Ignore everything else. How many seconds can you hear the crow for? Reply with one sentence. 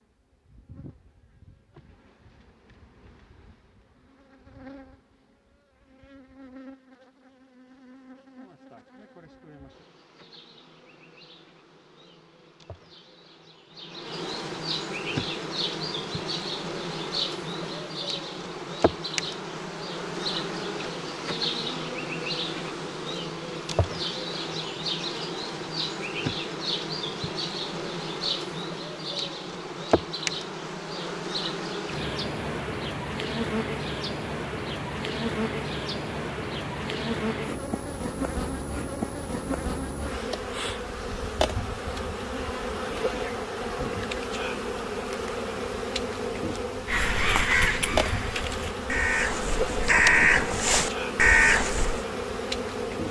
The crow can be heard for 5 seconds in total.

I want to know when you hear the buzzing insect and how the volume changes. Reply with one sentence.
You can hear the buzzing insect from 0.0 to 53.0 s, getting louder.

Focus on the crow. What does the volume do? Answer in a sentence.
The loudness of the crow goes down, then up.